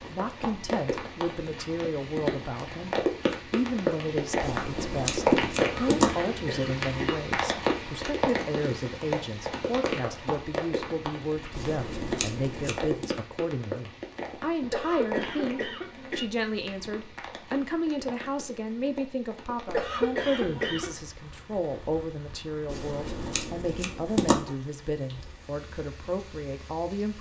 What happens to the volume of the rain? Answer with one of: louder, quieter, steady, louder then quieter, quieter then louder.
quieter.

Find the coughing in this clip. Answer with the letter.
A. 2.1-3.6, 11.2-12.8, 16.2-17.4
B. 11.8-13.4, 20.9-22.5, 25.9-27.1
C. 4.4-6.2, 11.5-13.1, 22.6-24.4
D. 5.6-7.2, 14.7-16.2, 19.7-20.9
D.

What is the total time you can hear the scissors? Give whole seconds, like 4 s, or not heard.
5 s.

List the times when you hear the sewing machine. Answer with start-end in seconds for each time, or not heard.
not heard.